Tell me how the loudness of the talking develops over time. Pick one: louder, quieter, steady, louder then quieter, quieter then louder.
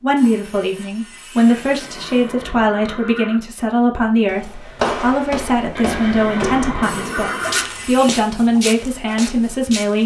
steady.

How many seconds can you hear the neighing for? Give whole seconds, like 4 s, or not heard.
4 s.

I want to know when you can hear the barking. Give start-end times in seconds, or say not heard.
not heard.